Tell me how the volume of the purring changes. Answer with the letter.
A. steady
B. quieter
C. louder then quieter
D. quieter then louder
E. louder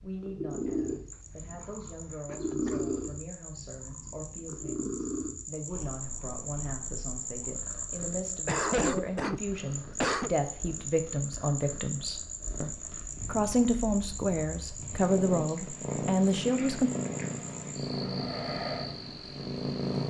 D.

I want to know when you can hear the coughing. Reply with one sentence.
The coughing can be heard from 1.6 to 2.9 s, from 8.4 to 10.3 s and from 16.4 to 16.9 s.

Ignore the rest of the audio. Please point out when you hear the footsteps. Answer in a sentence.
The footsteps can't be heard in this clip.